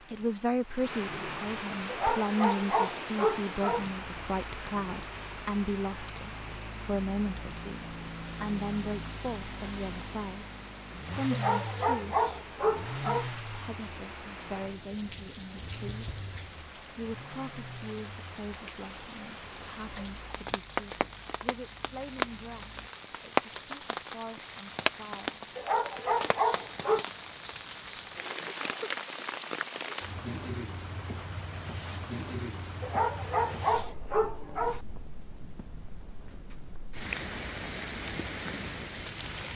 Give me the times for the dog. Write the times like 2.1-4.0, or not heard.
1.9-3.9, 11.3-13.3, 25.6-27.1, 32.8-34.8.